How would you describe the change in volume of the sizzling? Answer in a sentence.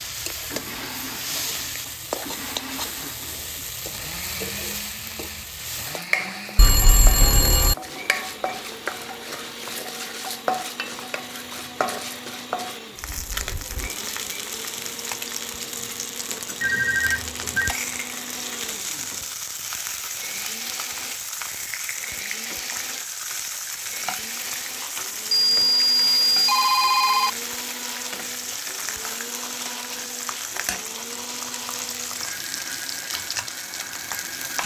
The loudness of the sizzling stays about the same.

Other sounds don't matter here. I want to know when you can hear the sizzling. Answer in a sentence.
The sizzling can be heard from 0.0 to 34.6 s.